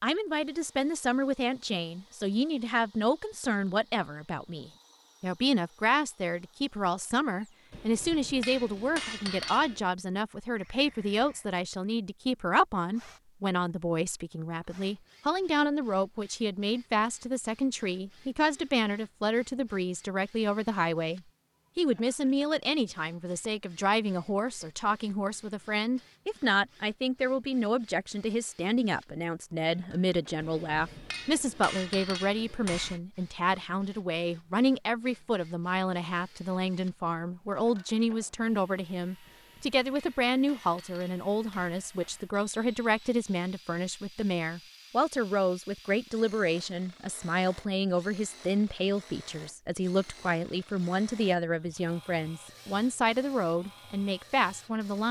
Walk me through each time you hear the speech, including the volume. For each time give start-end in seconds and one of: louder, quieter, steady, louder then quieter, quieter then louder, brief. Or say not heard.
0.0-55.0 steady.